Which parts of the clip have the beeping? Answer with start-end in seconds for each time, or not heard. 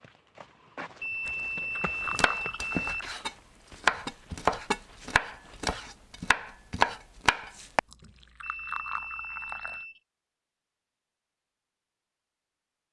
1.0-2.8, 8.4-10.0.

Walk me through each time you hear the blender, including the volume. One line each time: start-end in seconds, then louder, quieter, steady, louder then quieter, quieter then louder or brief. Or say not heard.
not heard.